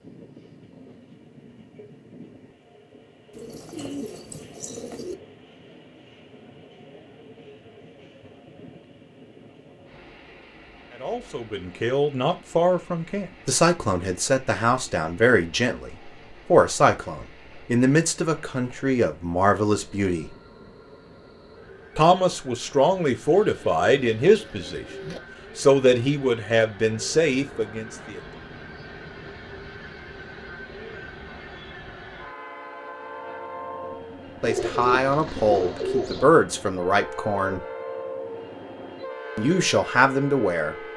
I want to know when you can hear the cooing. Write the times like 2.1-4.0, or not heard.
3.4-5.2, 23.3-25.2, 34.4-36.3.